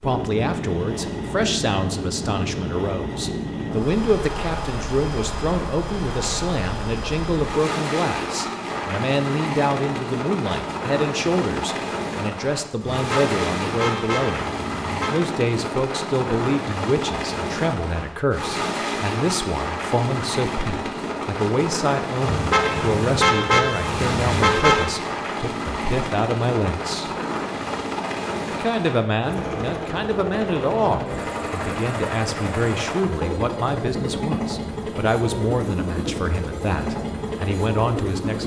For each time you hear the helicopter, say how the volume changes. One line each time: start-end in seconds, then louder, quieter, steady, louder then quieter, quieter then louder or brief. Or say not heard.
0.0-38.4 steady.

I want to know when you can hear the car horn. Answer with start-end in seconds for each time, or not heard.
12.8-15.3, 22.2-25.0.